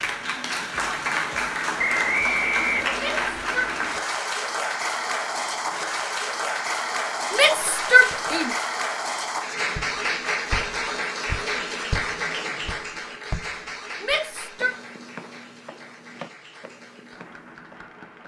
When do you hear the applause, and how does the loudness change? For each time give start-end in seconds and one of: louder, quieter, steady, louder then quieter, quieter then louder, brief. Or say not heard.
0.0-18.2 quieter.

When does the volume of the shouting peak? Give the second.
8 s.